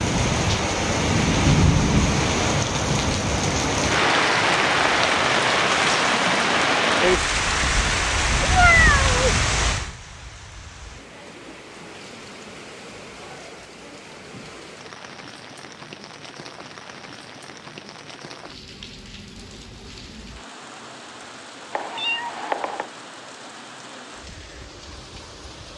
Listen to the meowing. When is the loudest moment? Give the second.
9 s.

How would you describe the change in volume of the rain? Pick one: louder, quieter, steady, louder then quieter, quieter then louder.
quieter.